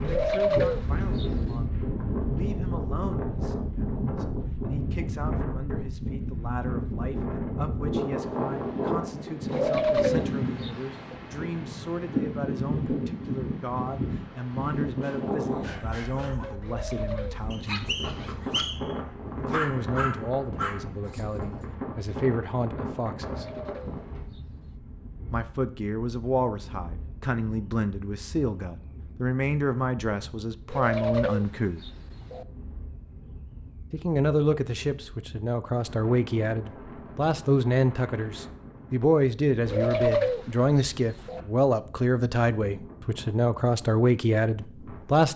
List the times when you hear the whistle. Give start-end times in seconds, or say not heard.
17.5-18.9.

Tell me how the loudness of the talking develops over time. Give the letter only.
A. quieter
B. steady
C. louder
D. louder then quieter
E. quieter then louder
C.